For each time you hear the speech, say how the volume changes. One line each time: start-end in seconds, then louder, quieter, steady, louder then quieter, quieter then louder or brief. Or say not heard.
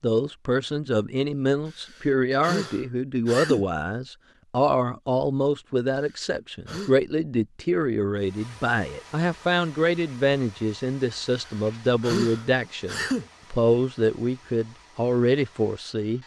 0.0-16.2 steady.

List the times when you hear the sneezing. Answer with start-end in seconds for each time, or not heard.
1.8-3.6, 5.9-7.0, 11.3-13.2.